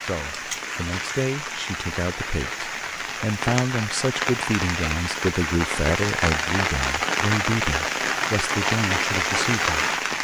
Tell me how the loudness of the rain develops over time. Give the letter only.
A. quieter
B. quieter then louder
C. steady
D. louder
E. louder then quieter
D.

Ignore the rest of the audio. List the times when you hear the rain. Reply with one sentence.
The rain can be heard from 0.0 to 10.1 s.